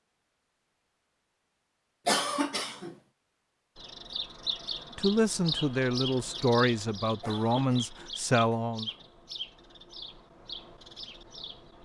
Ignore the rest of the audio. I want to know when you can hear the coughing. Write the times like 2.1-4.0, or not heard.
2.0-3.0, 7.2-9.0.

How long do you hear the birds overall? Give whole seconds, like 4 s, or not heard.
8 s.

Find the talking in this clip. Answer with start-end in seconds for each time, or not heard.
5.0-8.9.